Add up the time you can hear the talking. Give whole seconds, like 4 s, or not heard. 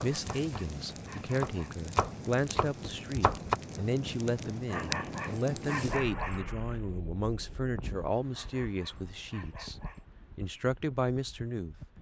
11 s.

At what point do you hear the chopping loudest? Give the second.
3 s.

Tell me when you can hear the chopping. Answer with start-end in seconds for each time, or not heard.
0.0-3.5.